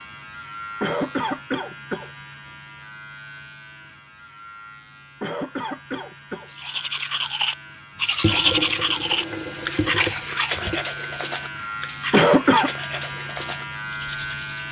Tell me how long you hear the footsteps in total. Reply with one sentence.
The footsteps can't be heard in this clip.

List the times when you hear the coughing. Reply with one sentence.
The coughing can be heard from 0.8 to 2.1 s, from 5.2 to 6.5 s and from 12.1 to 12.7 s.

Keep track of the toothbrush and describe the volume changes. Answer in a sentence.
The loudness of the toothbrush goes down.